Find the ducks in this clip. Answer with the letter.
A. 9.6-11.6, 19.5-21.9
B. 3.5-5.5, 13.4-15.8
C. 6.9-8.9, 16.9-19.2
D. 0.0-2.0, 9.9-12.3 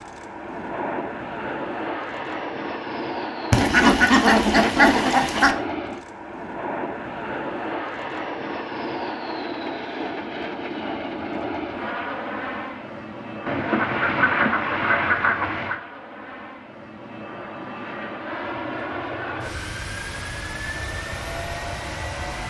B.